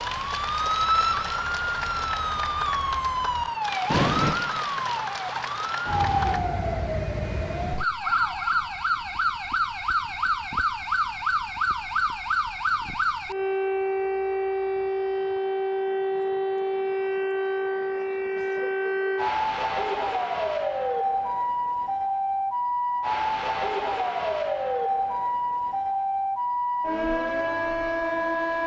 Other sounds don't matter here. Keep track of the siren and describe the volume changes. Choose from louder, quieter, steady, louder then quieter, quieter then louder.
steady.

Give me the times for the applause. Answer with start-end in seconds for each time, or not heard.
0.0-6.5.